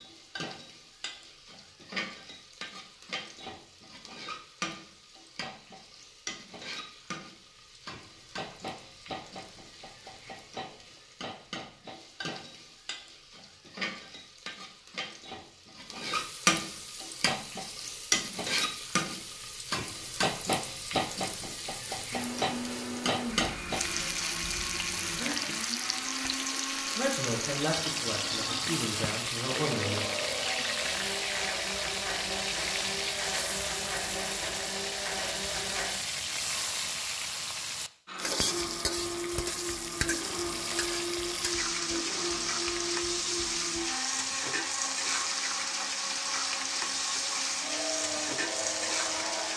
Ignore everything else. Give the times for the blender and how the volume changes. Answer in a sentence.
The blender can be heard from 22.1 to 36.0 s, at a steady volume; and from 38.0 to 49.5 s, at a steady volume.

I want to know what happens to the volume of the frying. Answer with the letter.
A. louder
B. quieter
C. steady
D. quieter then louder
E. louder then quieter
A.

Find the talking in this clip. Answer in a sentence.
You can hear the talking from 26.9 to 30.1 s.